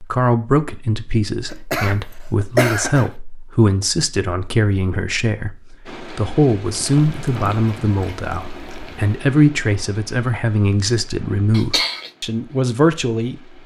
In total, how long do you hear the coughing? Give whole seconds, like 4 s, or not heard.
2 s.